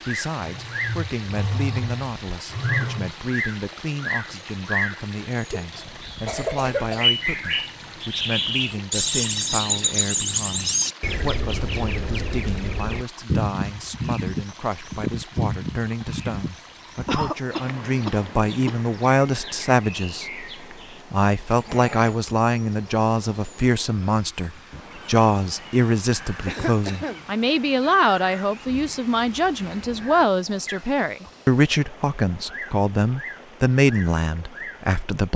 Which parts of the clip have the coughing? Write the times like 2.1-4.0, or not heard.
5.3-7.0, 17.1-18.8, 26.4-27.2.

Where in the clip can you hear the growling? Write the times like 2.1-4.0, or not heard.
0.4-3.1, 21.4-22.2.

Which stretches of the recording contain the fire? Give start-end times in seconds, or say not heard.
not heard.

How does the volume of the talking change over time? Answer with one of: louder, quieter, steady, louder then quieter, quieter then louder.
louder.